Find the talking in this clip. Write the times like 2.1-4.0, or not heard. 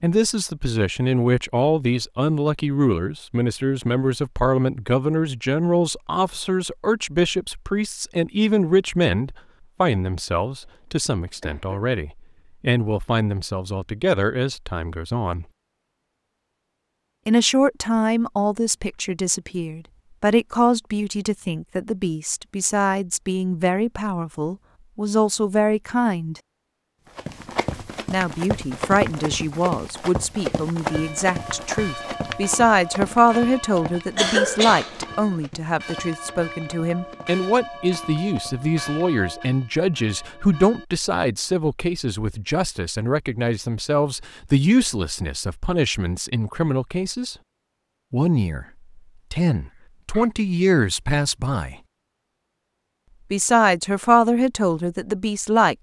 0.0-15.4, 17.2-26.4, 28.1-47.4, 48.1-48.6, 49.3-51.8, 53.3-55.7.